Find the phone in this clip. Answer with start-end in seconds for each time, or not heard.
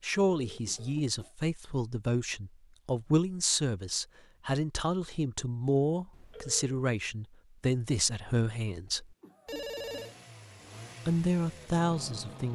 0.3-1.0, 6.1-6.8, 9.4-10.2.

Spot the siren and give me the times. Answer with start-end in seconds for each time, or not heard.
not heard.